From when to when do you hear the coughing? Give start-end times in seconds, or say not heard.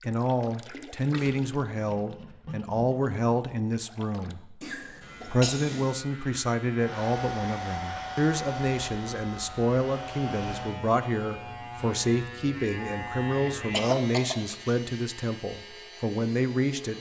4.6-6.0, 12.9-14.3.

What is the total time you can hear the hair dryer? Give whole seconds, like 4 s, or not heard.
4 s.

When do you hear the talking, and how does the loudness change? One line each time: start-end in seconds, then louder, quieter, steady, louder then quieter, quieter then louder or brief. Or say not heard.
0.0-16.9 steady.